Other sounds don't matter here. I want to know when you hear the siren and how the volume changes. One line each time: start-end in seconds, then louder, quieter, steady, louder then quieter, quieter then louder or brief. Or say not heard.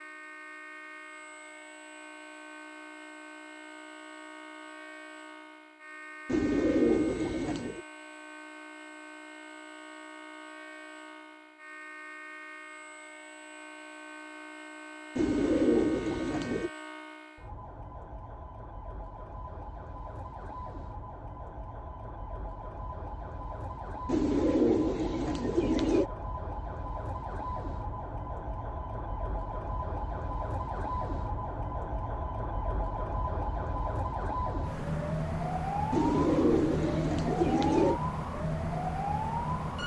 0.0-39.8 louder.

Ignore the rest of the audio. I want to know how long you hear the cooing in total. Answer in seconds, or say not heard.
7 s.